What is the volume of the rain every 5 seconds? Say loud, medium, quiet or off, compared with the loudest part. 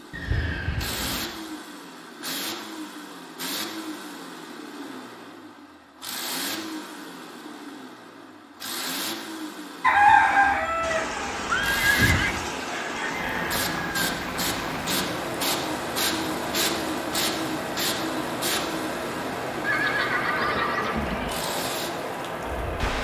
off, off, loud, loud, loud.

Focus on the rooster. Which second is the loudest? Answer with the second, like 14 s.
10 s.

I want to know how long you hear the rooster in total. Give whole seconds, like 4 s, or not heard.
4 s.